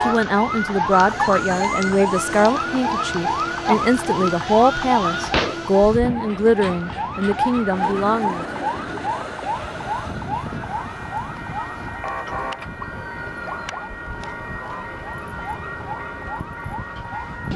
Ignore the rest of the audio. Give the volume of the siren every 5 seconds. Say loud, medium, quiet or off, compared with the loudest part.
loud, loud, medium, quiet.